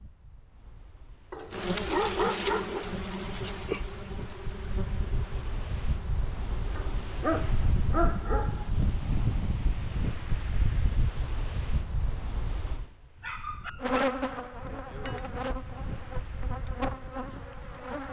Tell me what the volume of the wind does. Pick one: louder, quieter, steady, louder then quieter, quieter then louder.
louder then quieter.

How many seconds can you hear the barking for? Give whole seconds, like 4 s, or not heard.
5 s.